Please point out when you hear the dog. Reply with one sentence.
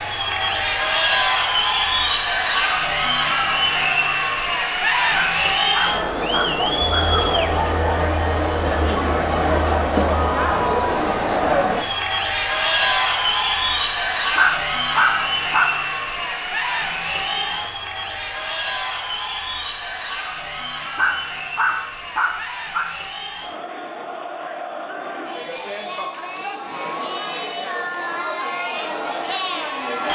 The dog can be heard from 5.1 to 7.2 s, from 14.3 to 15.7 s and from 20.9 to 22.9 s.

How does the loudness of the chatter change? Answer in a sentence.
The loudness of the chatter goes down.